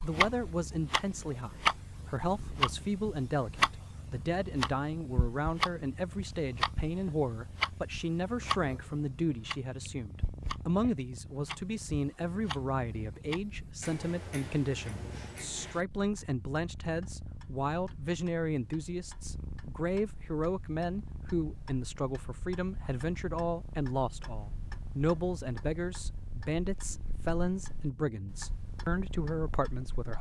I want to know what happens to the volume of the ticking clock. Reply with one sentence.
The loudness of the ticking clock goes down.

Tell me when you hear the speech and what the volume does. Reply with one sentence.
The speech can be heard from 0.0 to 30.1 s, at a steady volume.